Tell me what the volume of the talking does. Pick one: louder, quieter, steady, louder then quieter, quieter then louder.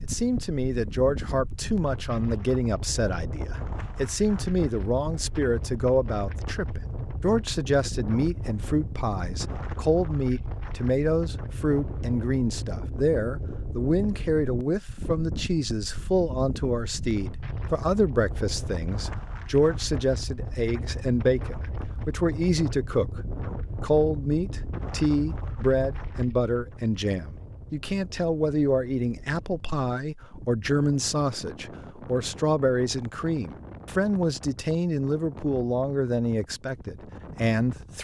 steady.